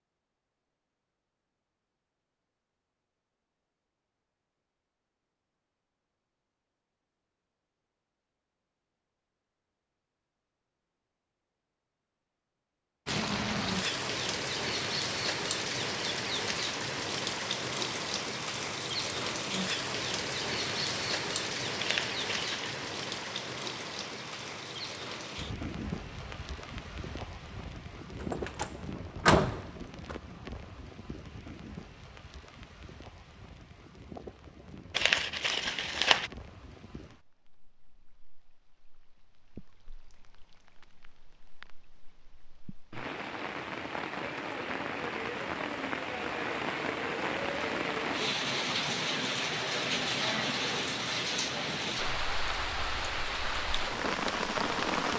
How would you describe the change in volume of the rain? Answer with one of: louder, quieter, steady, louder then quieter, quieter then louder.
quieter then louder.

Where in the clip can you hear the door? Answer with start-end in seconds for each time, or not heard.
28.2-30.1.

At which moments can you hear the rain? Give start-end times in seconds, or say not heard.
13.1-55.1.